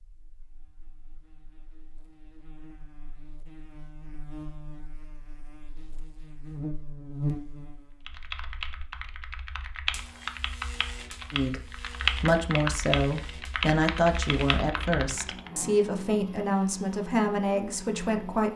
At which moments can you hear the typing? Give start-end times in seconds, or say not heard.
8.1-15.5.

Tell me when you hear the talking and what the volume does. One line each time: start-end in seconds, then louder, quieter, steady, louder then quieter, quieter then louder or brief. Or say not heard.
11.3-18.5 steady.